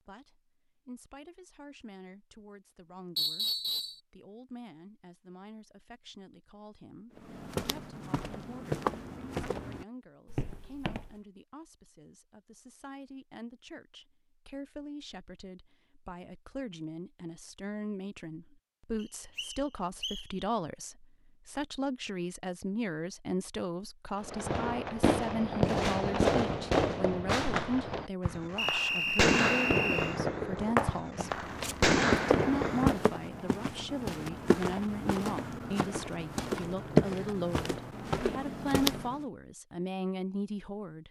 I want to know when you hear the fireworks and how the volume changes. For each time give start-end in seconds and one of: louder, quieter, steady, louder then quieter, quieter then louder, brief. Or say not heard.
24.2-33.1 steady.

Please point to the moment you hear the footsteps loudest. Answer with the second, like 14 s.
37 s.